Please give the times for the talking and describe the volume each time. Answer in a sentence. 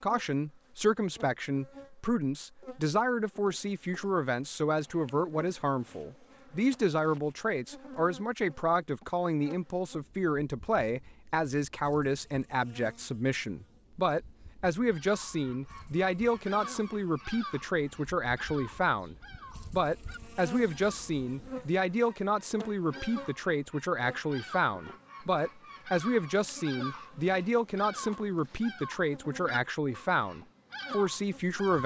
You can hear the talking from 0.0 to 31.8 s, at a steady volume.